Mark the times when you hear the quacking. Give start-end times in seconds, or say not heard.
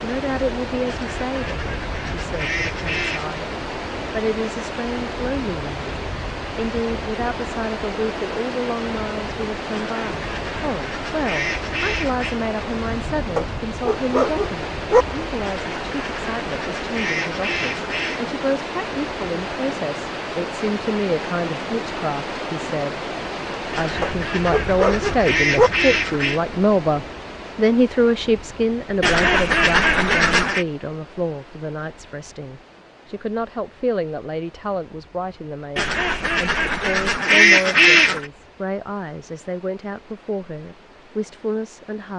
0.8-3.4, 9.7-12.3, 15.4-18.2, 23.7-26.4, 29.0-30.6, 35.8-38.2.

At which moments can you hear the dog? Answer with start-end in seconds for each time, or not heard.
13.3-15.1, 24.0-25.7.